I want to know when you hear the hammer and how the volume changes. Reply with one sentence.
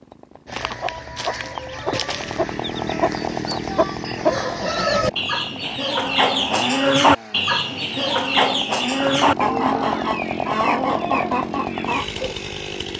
You can't hear the hammer here.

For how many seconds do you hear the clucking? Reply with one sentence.
You can hear the clucking for 12 seconds altogether.